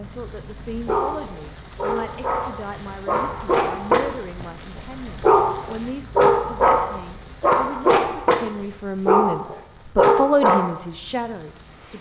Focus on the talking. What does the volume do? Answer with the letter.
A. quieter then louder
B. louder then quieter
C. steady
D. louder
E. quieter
D.